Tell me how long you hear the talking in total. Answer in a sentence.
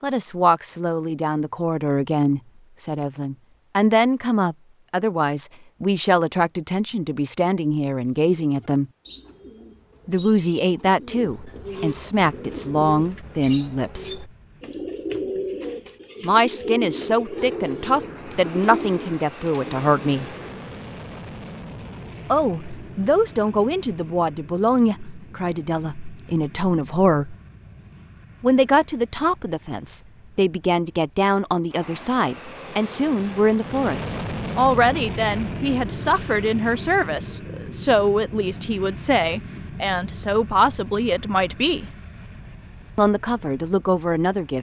You can hear the talking for 37 seconds altogether.